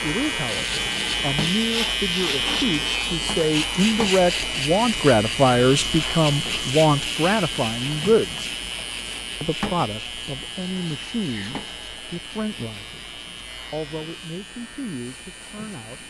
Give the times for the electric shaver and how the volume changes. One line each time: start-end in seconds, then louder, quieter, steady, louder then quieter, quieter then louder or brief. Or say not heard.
0.0-16.0 quieter.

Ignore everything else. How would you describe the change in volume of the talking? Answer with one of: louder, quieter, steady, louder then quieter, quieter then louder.
louder then quieter.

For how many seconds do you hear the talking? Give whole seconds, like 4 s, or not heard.
15 s.